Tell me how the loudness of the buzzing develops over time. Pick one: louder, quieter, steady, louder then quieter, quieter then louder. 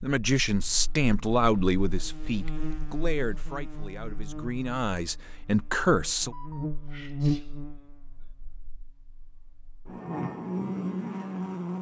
louder.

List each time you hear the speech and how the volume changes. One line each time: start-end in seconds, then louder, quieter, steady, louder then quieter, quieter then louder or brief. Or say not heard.
0.0-6.3 quieter then louder.